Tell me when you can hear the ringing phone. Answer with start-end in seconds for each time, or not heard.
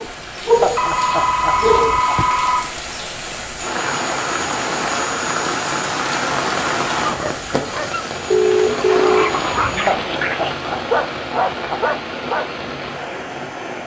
0.8-2.6, 8.3-9.9.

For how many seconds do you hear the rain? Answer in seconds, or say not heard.
14 s.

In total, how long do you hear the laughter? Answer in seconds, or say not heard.
4 s.